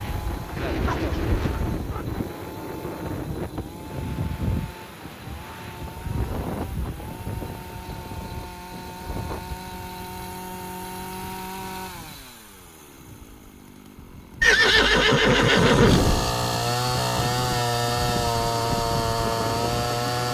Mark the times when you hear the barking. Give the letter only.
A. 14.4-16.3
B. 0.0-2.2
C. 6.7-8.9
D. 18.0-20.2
B.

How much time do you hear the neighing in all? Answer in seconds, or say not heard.
2 s.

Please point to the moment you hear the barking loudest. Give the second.
1 s.